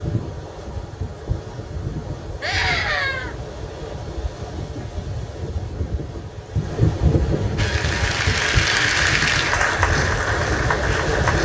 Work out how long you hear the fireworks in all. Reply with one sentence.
The fireworks can't be heard in this clip.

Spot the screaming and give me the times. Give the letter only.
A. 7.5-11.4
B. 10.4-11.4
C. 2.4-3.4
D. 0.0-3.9
C.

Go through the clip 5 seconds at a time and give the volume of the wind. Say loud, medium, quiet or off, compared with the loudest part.
medium, loud, loud.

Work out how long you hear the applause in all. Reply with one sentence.
The applause can be heard for 4 seconds in total.